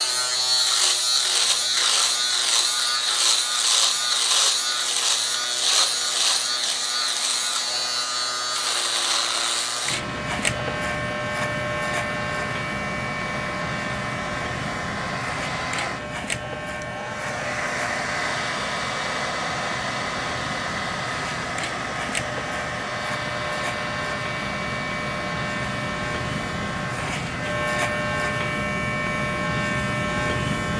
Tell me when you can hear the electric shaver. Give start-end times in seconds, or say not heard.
0.0-30.7.